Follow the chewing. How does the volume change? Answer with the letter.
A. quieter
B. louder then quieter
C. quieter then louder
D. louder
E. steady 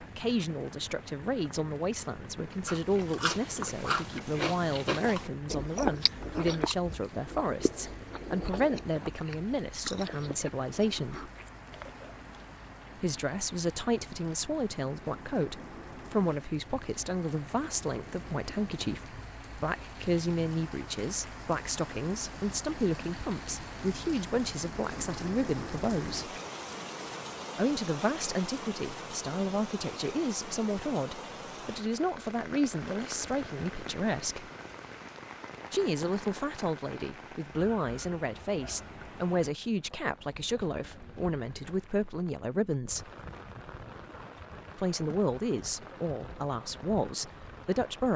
A.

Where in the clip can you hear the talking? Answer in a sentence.
You can hear the talking from 0.0 to 11.3 s, from 12.9 to 26.4 s, from 27.6 to 34.5 s, from 35.7 to 43.1 s and from 44.8 to 48.1 s.